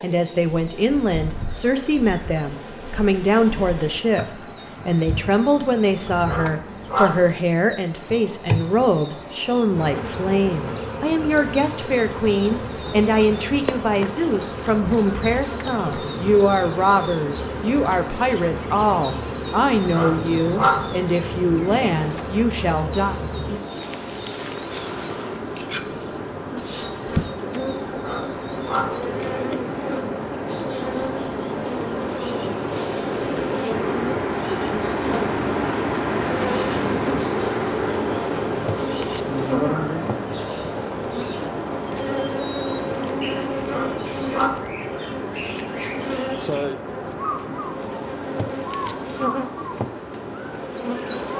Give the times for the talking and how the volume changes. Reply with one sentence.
The talking can be heard from 0.0 to 23.1 s, at a steady volume.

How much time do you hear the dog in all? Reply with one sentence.
The dog can be heard for 4 seconds in total.